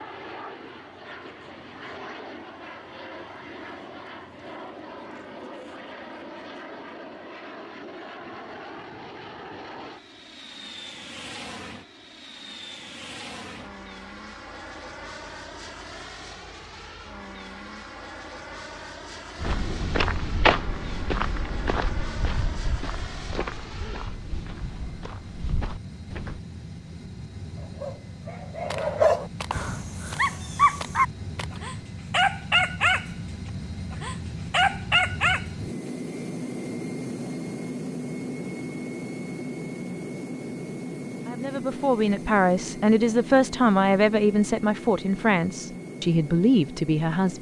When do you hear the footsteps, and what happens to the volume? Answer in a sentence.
You can hear the footsteps from 19.4 to 26.4 s, getting quieter.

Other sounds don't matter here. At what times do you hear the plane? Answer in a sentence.
You can hear the plane from 0.0 to 47.3 s.